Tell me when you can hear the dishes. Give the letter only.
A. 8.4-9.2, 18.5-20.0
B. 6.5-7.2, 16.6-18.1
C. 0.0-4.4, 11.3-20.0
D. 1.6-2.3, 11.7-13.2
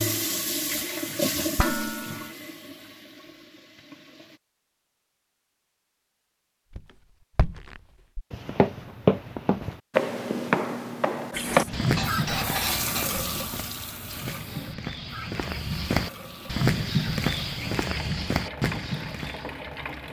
D.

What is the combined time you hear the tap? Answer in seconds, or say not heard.
13 s.